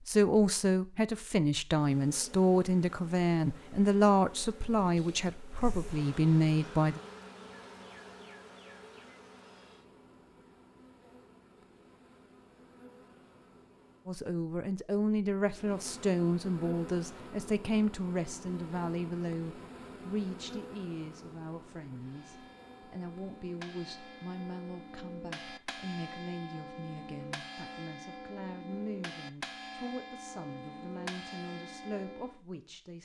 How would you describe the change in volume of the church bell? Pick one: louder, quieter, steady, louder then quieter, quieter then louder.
louder.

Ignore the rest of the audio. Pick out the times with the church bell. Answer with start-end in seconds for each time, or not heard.
22.0-32.4.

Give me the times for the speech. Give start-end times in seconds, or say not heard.
0.1-7.0, 14.1-33.0.